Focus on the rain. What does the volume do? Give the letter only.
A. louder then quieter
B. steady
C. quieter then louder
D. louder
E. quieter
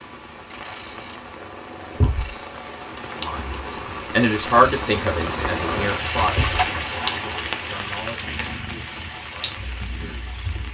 A.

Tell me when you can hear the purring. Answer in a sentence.
The purring can be heard from 0.0 to 10.6 s.